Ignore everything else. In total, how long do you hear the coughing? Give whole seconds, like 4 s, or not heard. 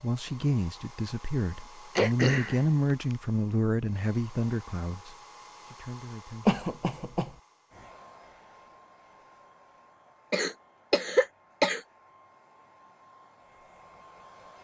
3 s.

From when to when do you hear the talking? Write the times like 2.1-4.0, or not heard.
0.0-6.5.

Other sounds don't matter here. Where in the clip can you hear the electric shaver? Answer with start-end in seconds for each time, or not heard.
not heard.